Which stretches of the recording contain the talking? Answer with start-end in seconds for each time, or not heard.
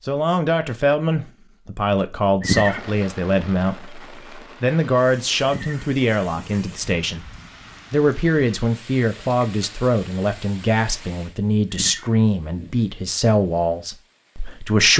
0.1-7.2, 7.9-14.9.